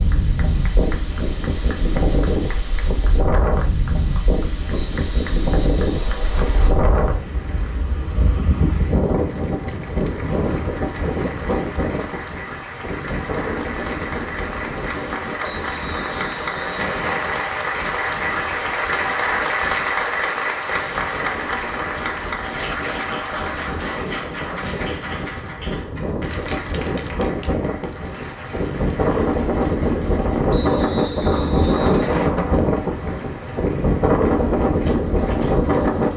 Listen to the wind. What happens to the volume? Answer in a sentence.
The volume of the wind goes down, then up.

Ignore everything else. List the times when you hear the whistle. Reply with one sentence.
The whistle can be heard from 4.7 to 6.7 s, from 15.4 to 17.4 s and from 30.5 to 32.3 s.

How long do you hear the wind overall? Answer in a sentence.
The wind can be heard for 36 seconds in total.